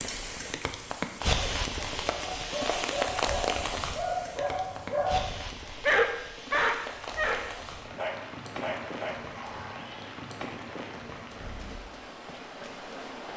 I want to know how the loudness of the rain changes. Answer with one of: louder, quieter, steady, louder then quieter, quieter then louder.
quieter.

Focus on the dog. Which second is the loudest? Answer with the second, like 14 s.
6 s.